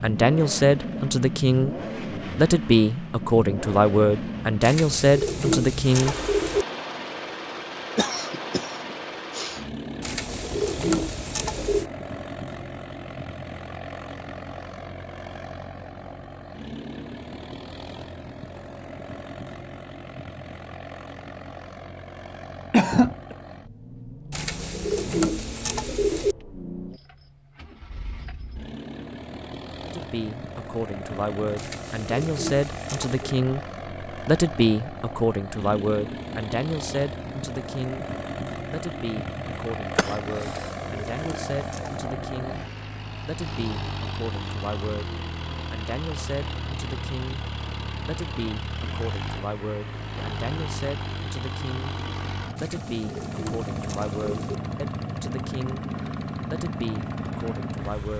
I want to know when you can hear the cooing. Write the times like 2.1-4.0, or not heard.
4.6-6.7, 10.0-11.9, 24.3-26.4, 31.6-33.4, 40.5-42.1, 52.5-54.5.